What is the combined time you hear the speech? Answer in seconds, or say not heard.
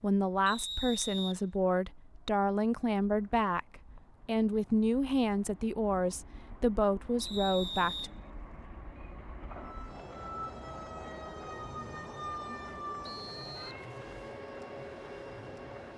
8 s.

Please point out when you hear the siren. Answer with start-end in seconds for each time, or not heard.
9.6-15.9.